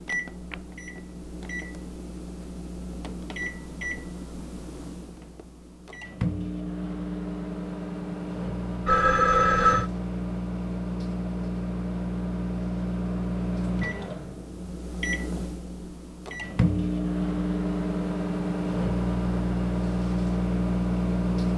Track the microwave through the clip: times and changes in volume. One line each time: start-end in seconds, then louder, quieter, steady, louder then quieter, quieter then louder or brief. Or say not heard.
0.0-21.5 louder.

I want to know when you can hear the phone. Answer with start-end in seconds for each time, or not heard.
8.8-9.9.